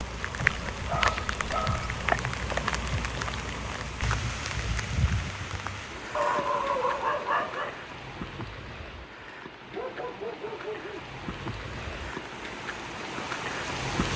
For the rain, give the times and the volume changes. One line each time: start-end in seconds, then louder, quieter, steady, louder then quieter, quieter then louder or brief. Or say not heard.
0.0-14.1 quieter then louder.